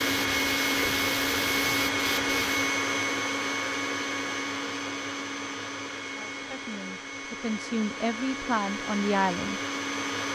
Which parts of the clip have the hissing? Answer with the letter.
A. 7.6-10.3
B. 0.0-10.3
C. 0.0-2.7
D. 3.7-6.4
C.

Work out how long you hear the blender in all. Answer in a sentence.
You can hear the blender for 10 seconds altogether.